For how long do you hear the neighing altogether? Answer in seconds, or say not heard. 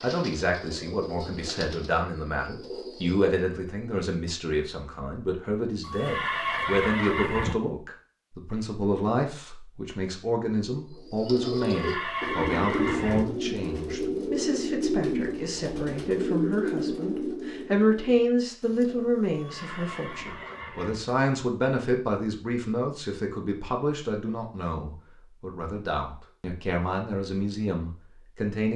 5 s.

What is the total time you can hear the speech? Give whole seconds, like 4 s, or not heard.
29 s.